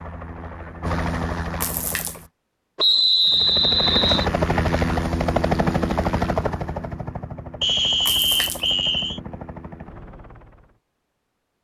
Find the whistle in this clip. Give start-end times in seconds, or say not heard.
2.8-4.3, 7.6-9.2.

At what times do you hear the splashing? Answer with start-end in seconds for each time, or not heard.
1.6-2.2, 8.1-8.7.